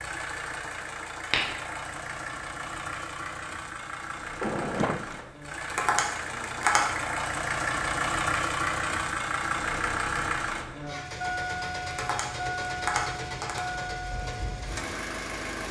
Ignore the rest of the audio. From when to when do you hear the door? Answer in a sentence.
You can hear the door from 4.4 to 5.3 s.